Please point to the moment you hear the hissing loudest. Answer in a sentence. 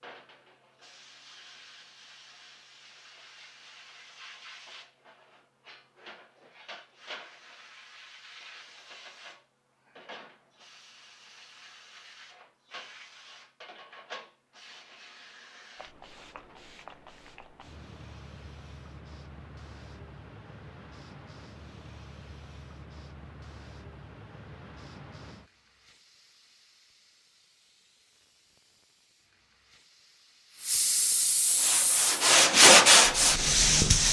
The volume of the hissing peaks at 34 seconds.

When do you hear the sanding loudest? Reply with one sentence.
The loudest moment of the sanding is at 33 seconds.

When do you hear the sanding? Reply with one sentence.
You can hear the sanding from 31.4 to 34.0 s.